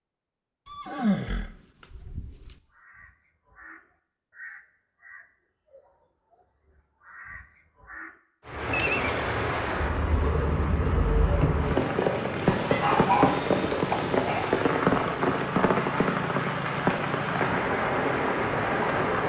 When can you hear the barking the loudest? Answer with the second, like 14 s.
13 s.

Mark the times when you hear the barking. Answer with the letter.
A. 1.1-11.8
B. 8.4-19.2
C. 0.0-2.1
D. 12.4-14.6
D.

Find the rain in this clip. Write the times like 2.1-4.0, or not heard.
8.4-19.2.